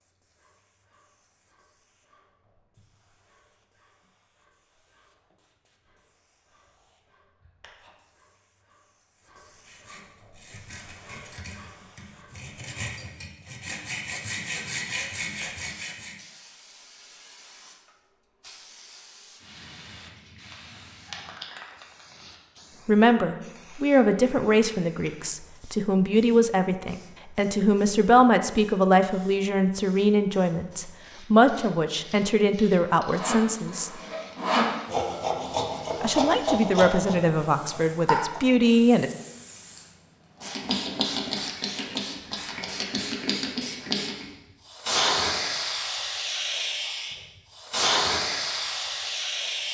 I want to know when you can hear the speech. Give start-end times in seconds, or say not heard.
22.9-33.9, 36.0-39.1.